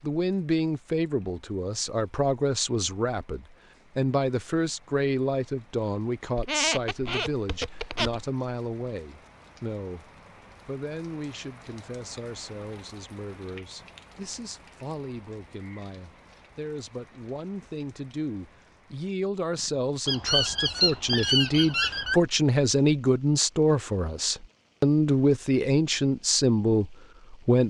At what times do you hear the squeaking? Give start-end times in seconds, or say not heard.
6.3-8.2, 20.1-22.2.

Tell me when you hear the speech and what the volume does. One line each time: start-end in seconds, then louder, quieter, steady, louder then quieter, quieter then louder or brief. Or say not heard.
0.0-27.6 quieter then louder.